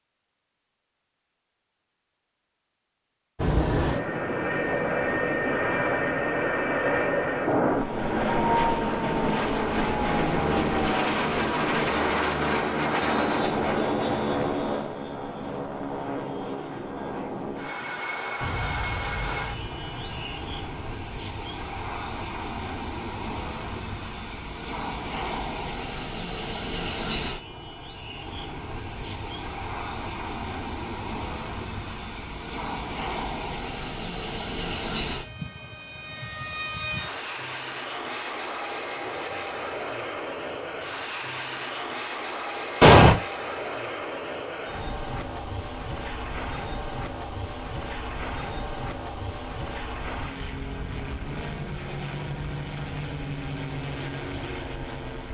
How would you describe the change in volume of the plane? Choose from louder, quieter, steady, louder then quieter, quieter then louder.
quieter.